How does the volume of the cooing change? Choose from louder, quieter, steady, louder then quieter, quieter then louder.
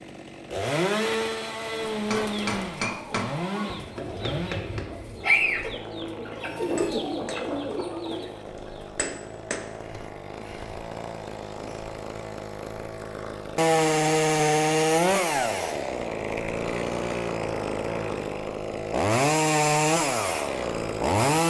louder then quieter.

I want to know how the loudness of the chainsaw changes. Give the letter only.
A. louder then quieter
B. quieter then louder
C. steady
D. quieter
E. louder
B.